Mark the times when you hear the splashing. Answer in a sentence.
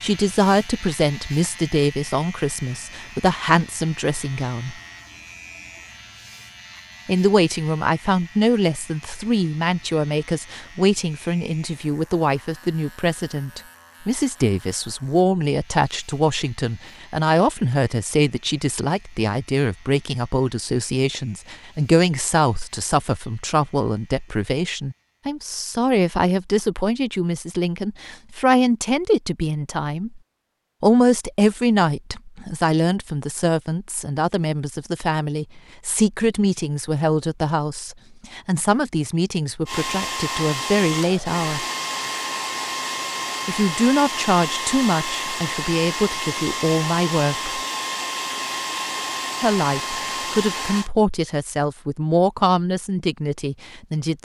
You can't hear the splashing here.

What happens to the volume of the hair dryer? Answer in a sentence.
The volume of the hair dryer stays about the same.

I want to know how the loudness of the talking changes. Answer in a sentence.
The volume of the talking stays about the same.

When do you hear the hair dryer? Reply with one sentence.
You can hear the hair dryer from 39.6 to 50.9 s.